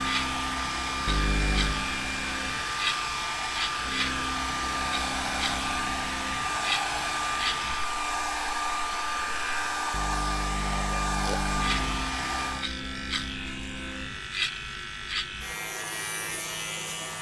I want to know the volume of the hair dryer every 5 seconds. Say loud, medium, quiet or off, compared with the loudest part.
loud, loud, loud, off.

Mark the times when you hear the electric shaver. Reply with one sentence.
The electric shaver can be heard from 0.0 to 9.9 s and from 11.4 to 17.1 s.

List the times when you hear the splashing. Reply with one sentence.
You can't hear the splashing here.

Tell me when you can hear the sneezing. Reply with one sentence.
You can hear the sneezing from 1.1 to 1.9 s and from 9.9 to 12.2 s.